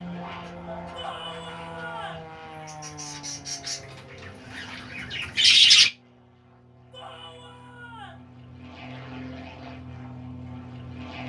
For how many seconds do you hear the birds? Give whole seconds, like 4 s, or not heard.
6 s.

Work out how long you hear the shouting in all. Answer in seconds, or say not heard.
3 s.